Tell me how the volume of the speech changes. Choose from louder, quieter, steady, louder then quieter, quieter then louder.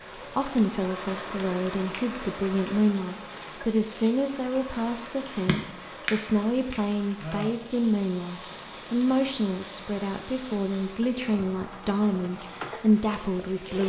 steady.